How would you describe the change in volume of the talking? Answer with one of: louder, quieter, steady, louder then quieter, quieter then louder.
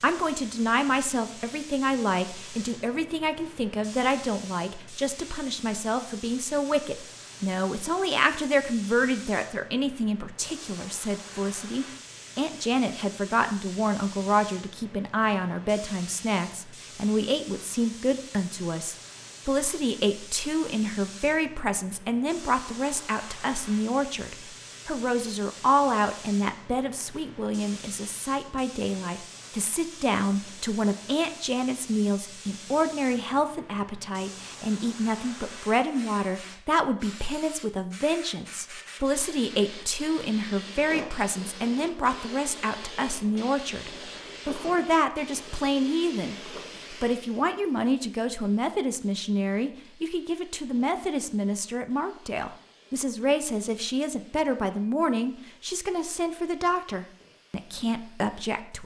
steady.